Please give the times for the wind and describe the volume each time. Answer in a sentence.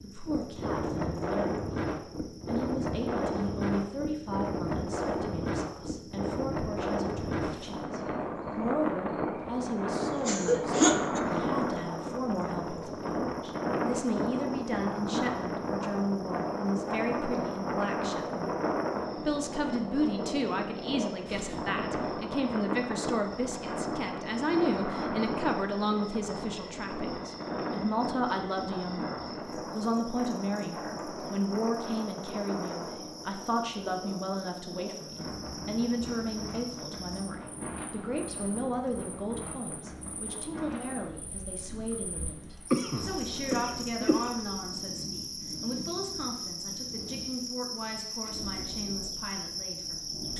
The wind can be heard from 0.0 to 50.3 s, getting quieter.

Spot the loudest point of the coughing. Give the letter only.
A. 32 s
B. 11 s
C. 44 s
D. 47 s
B.